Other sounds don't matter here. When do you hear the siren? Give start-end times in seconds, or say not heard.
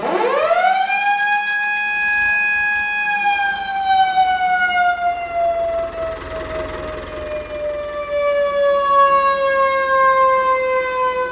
0.0-11.2.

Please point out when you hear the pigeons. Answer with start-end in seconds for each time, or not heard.
not heard.